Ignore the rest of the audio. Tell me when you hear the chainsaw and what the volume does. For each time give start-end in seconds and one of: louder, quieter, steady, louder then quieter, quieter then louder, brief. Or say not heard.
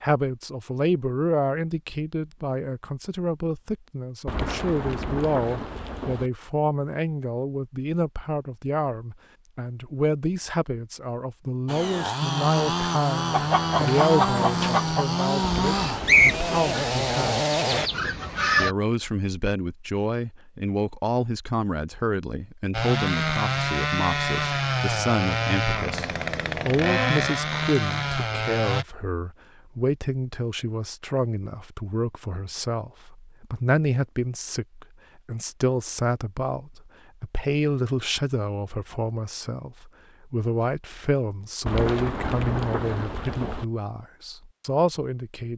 11.7-17.9 steady
22.7-28.9 steady.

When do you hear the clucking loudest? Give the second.
16 s.